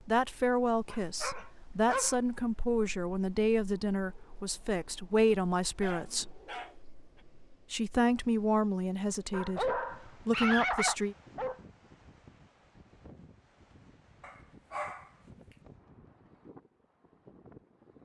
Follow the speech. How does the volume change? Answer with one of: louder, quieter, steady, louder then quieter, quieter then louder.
steady.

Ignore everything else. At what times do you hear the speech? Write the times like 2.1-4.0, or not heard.
0.1-6.4, 7.7-11.2.